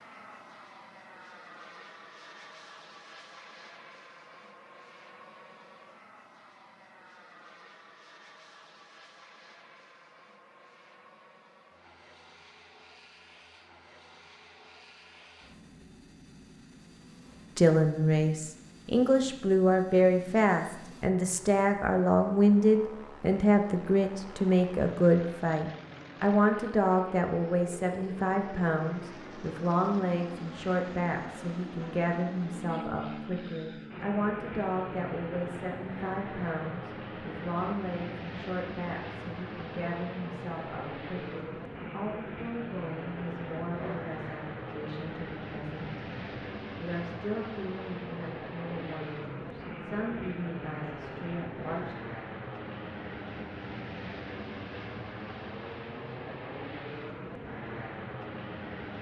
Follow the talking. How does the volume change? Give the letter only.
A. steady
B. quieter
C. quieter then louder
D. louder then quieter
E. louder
B.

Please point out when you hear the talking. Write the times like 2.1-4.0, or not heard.
17.6-52.0.